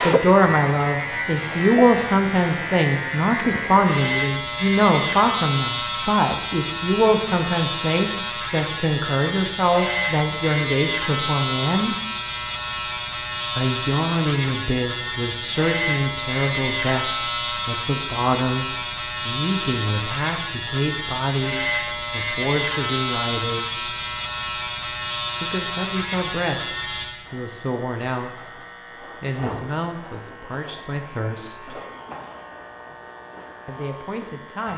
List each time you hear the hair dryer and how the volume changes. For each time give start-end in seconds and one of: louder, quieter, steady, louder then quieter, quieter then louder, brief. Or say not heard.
not heard.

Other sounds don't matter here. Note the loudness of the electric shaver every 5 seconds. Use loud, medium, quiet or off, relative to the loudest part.
loud, loud, loud, loud, loud, medium, quiet.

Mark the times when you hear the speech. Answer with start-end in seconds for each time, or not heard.
0.0-11.9, 13.6-23.9, 25.4-31.8, 33.6-34.7.